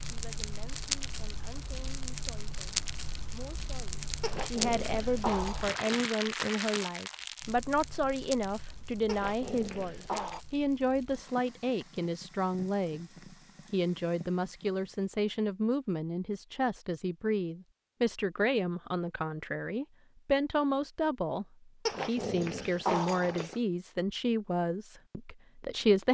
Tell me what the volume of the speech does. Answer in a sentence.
The loudness of the speech goes up.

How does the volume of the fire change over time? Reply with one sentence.
The volume of the fire goes down.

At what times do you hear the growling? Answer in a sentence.
The growling can be heard from 4.2 to 5.7 s, from 9.1 to 10.4 s and from 21.9 to 23.6 s.